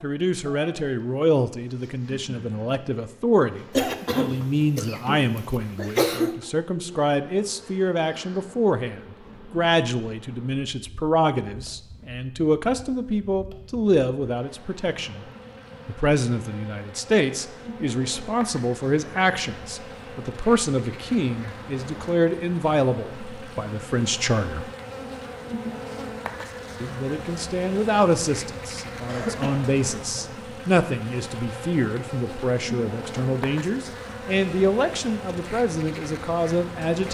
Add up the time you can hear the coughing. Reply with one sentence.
You can hear the coughing for 4 seconds altogether.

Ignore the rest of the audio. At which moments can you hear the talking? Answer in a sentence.
The talking can be heard from 0.0 to 15.2 s, from 15.8 to 24.6 s and from 26.8 to 37.0 s.